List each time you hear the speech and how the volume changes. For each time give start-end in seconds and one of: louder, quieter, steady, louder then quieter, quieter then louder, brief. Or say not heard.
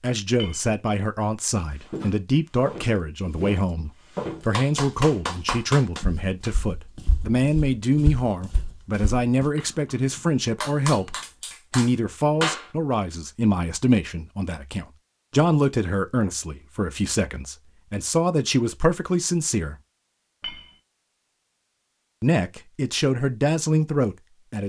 0.0-19.8 steady
22.2-24.6 brief.